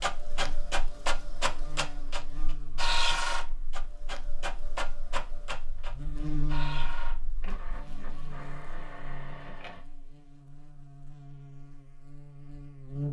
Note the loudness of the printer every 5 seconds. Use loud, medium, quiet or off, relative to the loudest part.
loud, medium, off.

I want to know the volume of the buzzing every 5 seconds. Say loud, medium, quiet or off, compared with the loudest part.
medium, loud, loud.